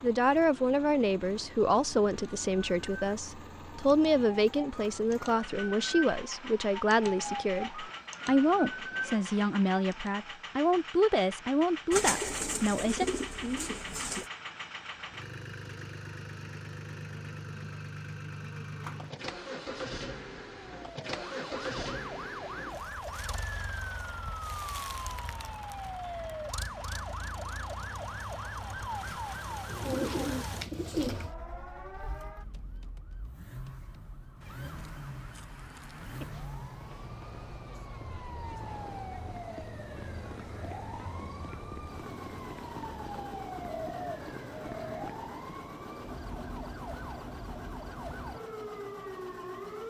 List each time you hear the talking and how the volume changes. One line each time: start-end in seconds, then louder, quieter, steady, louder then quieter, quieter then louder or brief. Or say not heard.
0.0-13.1 steady.